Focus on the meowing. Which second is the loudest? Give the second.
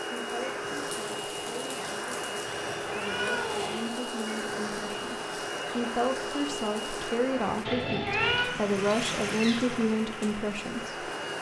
8 s.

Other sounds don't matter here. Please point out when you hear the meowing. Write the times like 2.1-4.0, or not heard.
2.5-3.9, 7.7-8.6.